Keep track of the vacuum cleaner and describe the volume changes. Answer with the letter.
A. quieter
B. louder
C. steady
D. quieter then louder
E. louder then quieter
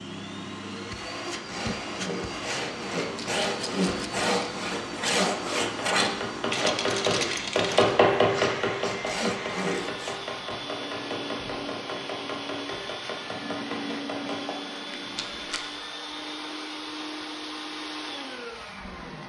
C.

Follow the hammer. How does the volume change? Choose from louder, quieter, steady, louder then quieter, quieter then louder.
quieter.